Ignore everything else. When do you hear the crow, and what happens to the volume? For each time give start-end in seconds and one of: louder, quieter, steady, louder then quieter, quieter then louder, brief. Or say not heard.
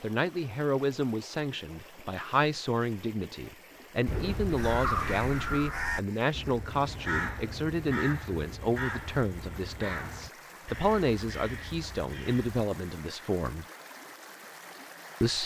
4.5-12.6 quieter.